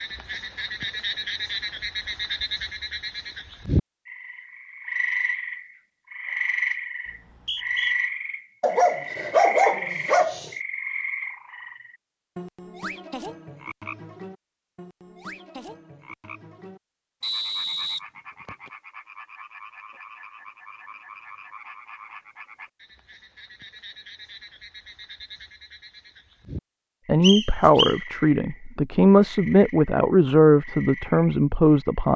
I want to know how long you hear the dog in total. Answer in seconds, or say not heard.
2 s.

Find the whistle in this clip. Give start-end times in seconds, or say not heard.
7.0-8.0, 17.2-18.7, 27.2-27.9.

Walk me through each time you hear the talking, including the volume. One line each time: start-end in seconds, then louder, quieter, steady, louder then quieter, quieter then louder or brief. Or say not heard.
27.1-32.1 steady.